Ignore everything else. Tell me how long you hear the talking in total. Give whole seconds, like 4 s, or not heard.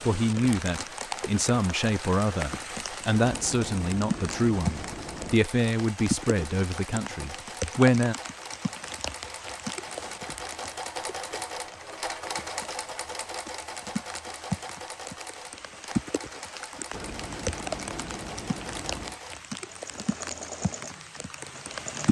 8 s.